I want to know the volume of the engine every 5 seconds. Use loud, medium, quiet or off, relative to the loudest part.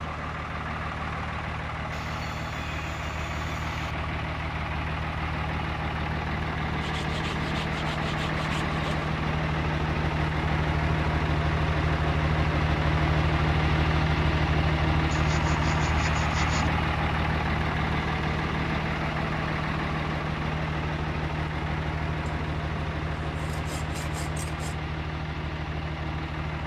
medium, loud, loud, loud, medium, medium.